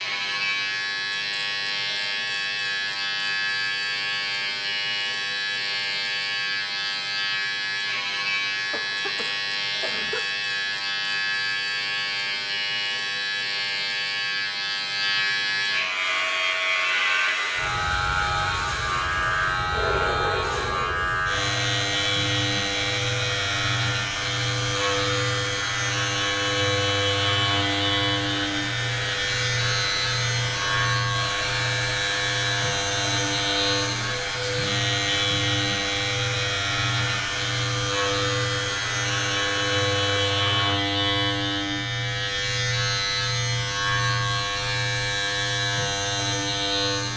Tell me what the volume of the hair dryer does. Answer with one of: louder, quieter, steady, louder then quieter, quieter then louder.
steady.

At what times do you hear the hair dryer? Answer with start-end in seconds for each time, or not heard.
15.8-40.9.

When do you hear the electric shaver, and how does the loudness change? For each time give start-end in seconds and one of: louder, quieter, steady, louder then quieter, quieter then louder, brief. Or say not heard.
0.0-47.1 steady.